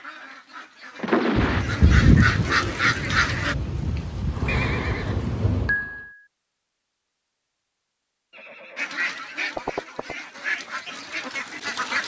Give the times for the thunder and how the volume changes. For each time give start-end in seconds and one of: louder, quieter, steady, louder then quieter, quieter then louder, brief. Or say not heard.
1.4-5.8 quieter.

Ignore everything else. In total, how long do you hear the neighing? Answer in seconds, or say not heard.
4 s.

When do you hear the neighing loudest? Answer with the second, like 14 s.
1 s.